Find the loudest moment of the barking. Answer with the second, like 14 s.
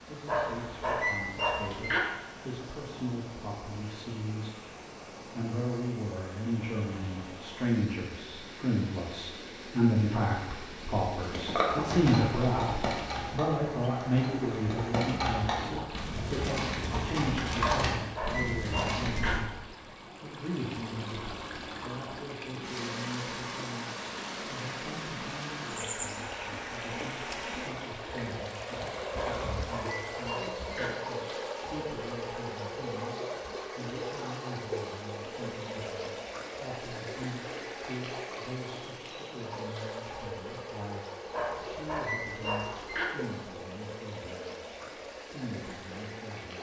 1 s.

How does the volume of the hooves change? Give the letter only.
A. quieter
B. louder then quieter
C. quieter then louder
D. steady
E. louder
C.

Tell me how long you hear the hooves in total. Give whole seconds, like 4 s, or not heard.
8 s.